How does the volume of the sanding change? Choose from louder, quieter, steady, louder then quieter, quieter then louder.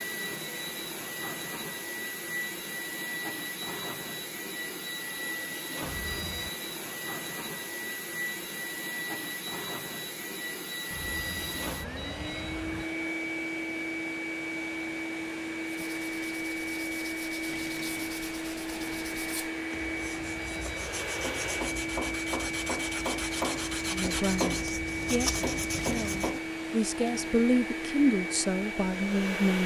louder.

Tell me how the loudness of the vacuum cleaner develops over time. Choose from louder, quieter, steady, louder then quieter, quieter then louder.
steady.